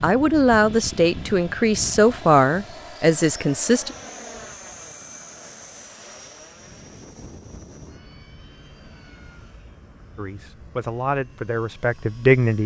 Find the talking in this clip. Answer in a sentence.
You can hear the talking from 0.0 to 4.0 s and from 10.2 to 12.6 s.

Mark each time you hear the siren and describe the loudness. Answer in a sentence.
You can't hear the siren here.